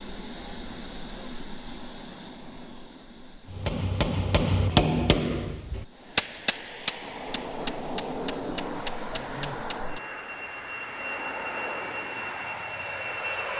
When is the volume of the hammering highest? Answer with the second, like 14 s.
5 s.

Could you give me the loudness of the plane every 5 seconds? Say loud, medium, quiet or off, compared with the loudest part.
medium, loud, loud.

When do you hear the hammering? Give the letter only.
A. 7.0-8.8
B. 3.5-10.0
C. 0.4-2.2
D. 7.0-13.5
B.